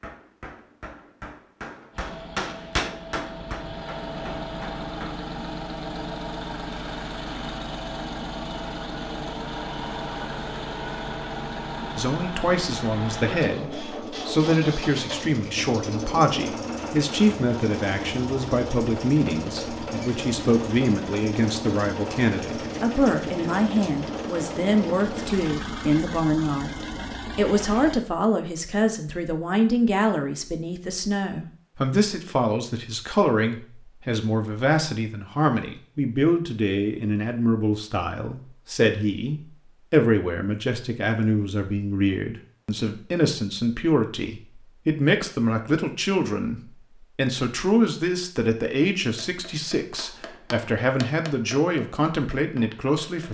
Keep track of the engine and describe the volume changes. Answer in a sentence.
The loudness of the engine stays about the same.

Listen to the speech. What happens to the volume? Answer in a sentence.
The loudness of the speech stays about the same.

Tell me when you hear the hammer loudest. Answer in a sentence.
The volume of the hammer peaks at 3 seconds.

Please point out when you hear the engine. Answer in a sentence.
The engine can be heard from 1.9 to 28.0 s.